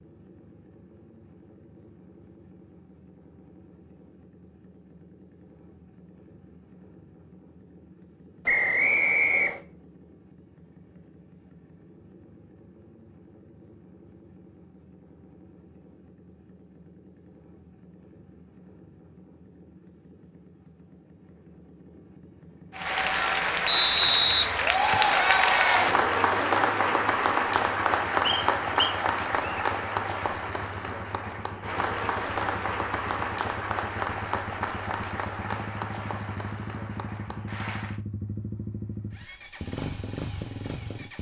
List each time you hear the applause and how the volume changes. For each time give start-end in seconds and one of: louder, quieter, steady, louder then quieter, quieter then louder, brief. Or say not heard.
22.8-38.0 quieter.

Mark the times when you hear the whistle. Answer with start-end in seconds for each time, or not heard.
8.4-9.6, 23.6-25.1, 28.2-29.6.